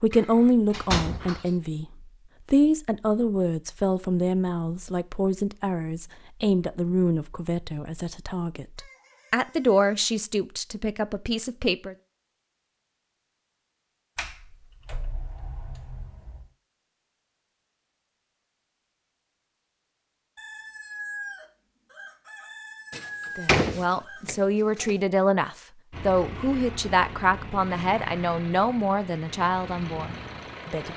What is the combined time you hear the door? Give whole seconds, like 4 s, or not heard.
6 s.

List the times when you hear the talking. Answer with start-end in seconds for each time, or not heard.
0.0-1.9, 2.5-11.9, 23.4-30.9.